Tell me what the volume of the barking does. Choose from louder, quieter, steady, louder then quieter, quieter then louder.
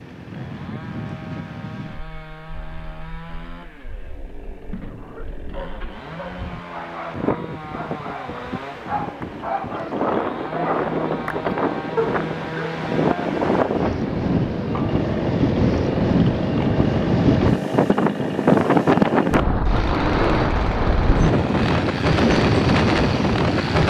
louder.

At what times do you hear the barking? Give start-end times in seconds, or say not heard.
4.8-12.8.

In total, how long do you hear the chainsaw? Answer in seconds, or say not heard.
24 s.